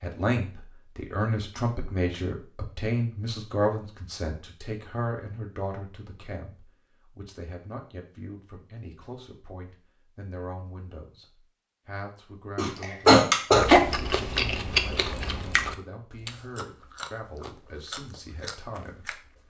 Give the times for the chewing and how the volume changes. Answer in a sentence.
The chewing can be heard from 13.6 to 19.4 s, getting quieter.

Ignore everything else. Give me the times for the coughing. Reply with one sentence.
The coughing can be heard from 12.6 to 13.8 s.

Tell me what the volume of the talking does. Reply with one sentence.
The volume of the talking goes down.